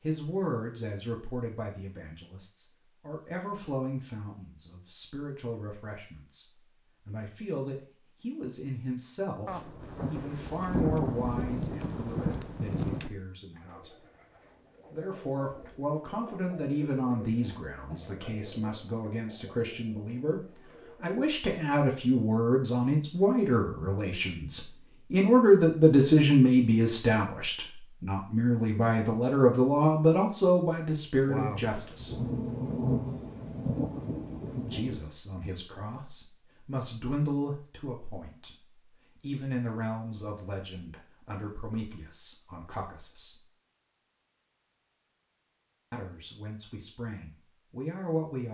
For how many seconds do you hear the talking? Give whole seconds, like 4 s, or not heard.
43 s.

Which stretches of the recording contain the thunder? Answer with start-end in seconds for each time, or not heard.
9.4-13.1, 31.2-35.0.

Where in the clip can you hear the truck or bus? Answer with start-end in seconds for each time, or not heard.
not heard.